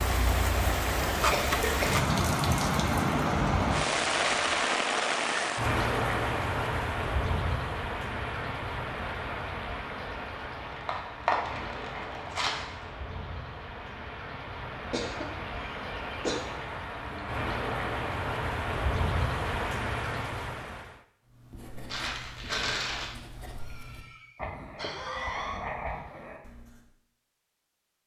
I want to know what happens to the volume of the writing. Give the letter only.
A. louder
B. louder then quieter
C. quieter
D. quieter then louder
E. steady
A.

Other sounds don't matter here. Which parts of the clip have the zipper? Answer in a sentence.
The zipper can't be heard in this clip.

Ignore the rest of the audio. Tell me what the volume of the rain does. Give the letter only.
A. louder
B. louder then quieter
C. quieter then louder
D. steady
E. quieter
C.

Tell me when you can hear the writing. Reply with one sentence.
You can hear the writing from 21.3 to 26.9 s.